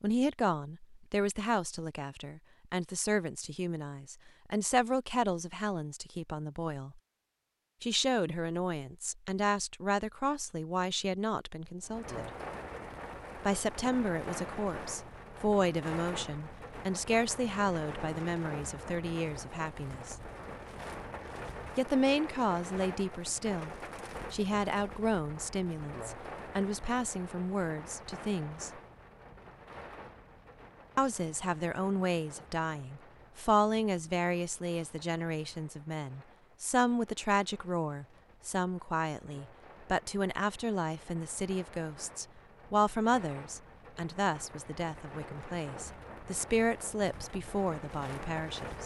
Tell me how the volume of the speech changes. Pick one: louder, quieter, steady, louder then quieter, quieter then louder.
steady.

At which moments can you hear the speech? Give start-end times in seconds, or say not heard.
0.0-7.0, 7.8-12.3, 13.4-20.1, 21.8-28.7, 30.9-48.8.